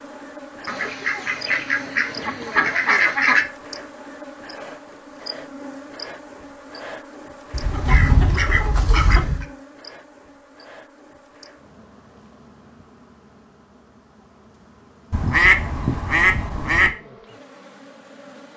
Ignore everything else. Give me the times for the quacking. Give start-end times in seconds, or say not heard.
0.7-3.5, 7.5-9.4, 15.1-16.9.